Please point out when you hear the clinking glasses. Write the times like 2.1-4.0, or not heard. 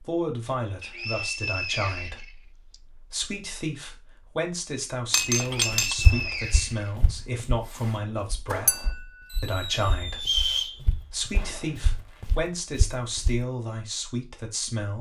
5.1-6.0, 8.7-9.3.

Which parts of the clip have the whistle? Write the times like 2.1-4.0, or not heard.
0.8-2.8, 5.3-6.9, 10.2-10.8.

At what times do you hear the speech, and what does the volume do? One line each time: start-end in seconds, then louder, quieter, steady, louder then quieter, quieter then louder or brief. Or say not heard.
0.0-14.9 steady.